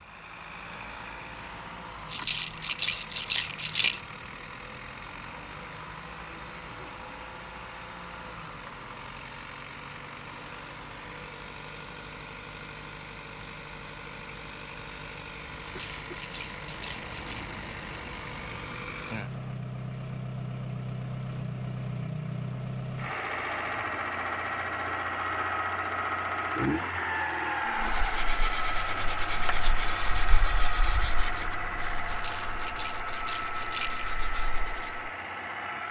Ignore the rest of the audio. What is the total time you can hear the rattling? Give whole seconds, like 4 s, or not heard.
6 s.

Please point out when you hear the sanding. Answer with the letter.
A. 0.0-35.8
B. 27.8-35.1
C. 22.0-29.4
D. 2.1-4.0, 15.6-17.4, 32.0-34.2
B.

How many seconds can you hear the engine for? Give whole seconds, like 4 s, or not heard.
36 s.